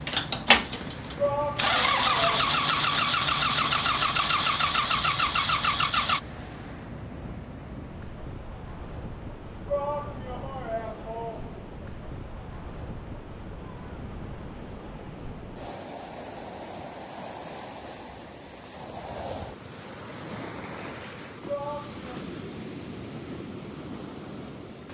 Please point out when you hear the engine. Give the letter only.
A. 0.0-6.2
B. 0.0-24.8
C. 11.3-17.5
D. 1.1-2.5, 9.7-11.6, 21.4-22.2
A.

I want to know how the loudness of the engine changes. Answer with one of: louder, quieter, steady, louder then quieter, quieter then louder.
steady.